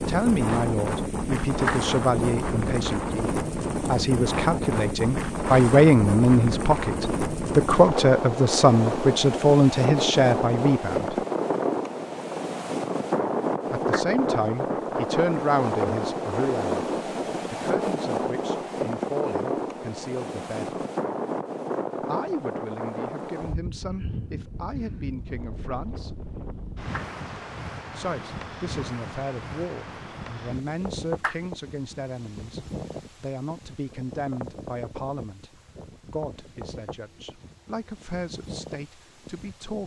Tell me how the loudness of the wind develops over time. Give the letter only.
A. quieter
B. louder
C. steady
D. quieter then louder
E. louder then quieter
A.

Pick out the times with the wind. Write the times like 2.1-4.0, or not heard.
0.0-39.8.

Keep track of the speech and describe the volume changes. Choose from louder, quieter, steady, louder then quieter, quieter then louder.
quieter.